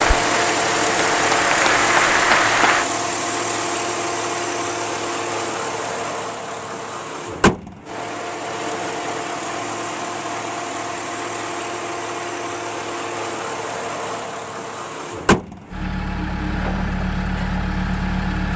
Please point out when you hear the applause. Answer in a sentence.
You can hear the applause from 0.0 to 2.9 s.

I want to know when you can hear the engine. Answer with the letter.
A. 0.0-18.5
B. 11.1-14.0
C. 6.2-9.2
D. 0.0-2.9
A.